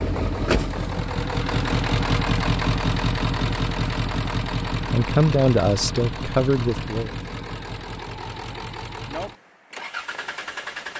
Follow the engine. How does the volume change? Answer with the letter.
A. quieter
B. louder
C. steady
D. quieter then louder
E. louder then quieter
A.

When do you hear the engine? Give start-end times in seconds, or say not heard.
0.0-10.9.